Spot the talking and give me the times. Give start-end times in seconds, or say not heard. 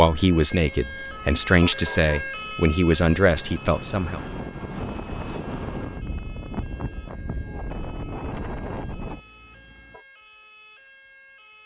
0.0-4.2.